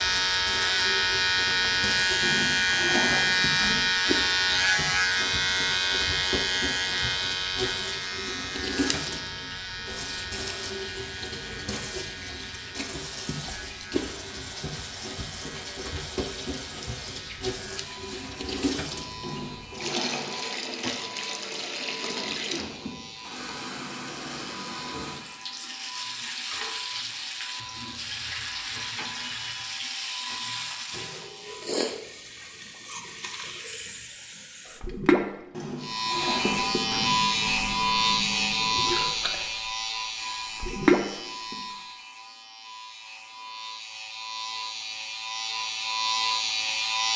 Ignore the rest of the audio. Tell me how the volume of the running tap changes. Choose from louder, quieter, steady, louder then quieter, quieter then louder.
louder.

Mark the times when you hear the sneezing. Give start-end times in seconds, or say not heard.
not heard.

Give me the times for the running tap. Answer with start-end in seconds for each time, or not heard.
0.0-41.8.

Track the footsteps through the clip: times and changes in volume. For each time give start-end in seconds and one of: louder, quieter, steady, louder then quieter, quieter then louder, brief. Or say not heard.
not heard.